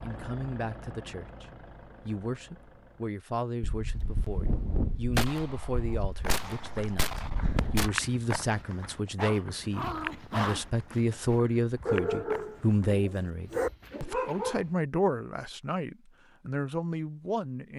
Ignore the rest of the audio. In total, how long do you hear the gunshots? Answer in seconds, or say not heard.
4 s.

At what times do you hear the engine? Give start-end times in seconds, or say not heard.
0.0-3.1.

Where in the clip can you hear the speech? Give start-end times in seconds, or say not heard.
0.0-17.7.